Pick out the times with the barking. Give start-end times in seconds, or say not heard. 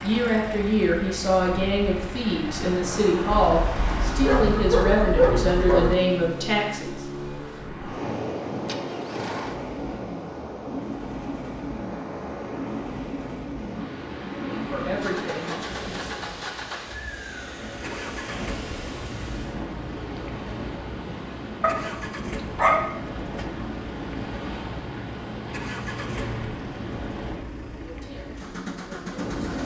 3.5-6.0, 21.6-23.4.